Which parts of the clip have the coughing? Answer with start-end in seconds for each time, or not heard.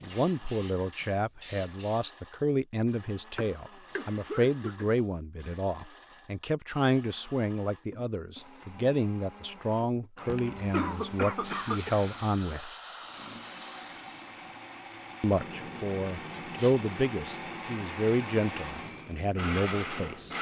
3.4-4.9, 10.3-12.0, 16.4-16.9.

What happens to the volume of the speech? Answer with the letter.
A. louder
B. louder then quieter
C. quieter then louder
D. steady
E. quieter
D.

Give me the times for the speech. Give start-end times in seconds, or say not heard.
0.0-12.7, 15.2-20.3.